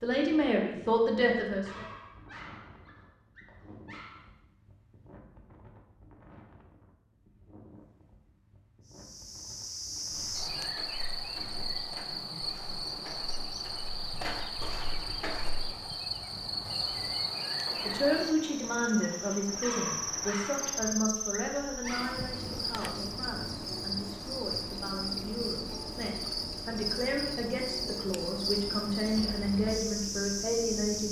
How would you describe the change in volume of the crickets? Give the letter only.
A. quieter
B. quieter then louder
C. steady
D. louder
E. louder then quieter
C.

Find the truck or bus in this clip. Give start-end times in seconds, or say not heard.
not heard.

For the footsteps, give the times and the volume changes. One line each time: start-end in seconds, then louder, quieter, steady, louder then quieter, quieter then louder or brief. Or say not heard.
10.1-15.7 louder.